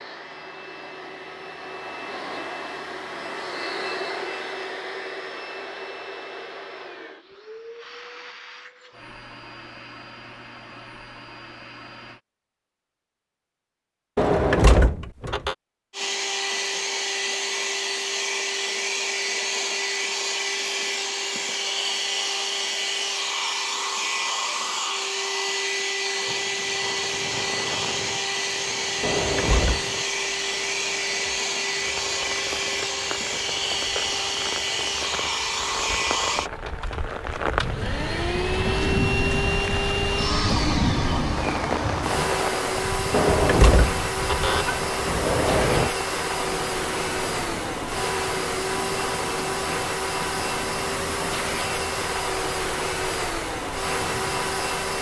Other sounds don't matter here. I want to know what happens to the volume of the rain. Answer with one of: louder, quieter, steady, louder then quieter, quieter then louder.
louder then quieter.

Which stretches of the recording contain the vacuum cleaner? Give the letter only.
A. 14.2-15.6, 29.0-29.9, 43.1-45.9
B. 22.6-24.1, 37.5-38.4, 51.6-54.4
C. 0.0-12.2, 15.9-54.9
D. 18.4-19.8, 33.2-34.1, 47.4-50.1
C.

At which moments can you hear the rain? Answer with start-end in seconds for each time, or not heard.
26.2-54.9.